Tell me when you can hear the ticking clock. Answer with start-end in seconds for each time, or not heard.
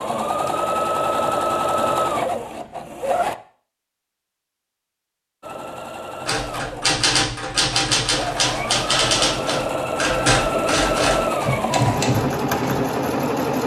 not heard.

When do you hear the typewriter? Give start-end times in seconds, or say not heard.
6.2-12.8.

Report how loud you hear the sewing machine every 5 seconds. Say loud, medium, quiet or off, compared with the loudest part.
loud, medium, loud.